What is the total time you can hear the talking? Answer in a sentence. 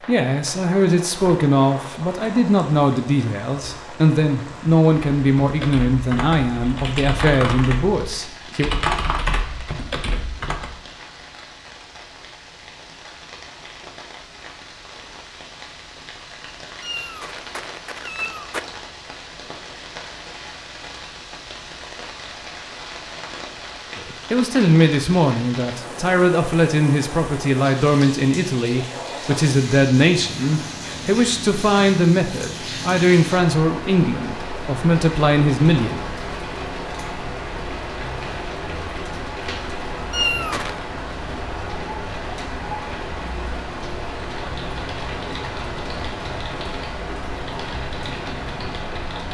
You can hear the talking for 21 seconds altogether.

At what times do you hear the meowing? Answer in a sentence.
You can hear the meowing from 16.8 to 18.7 s and from 40.1 to 40.8 s.